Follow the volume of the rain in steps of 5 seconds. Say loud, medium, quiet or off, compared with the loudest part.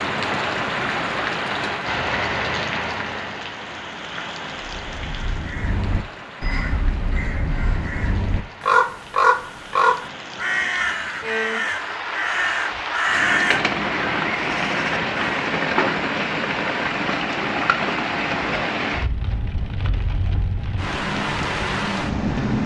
loud, quiet, loud, loud, loud.